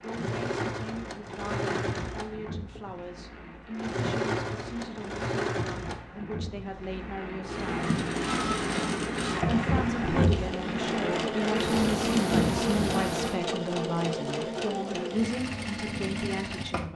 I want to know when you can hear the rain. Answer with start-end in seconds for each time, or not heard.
0.0-13.3.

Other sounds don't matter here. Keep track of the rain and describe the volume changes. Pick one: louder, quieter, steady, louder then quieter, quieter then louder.
louder.